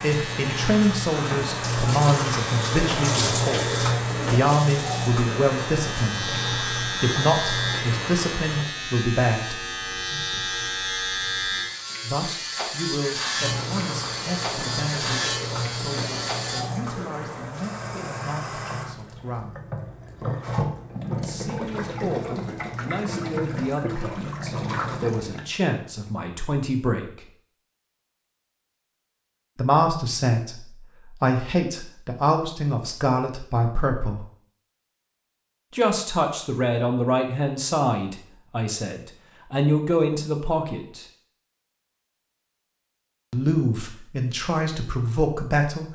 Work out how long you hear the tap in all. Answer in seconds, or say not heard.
21 s.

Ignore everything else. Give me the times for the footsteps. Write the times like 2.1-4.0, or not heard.
not heard.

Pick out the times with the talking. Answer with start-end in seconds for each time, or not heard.
0.0-9.6, 12.0-19.6, 21.1-27.3, 29.6-34.2, 35.7-41.0, 43.3-45.8.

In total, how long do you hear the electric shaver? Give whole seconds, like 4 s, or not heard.
17 s.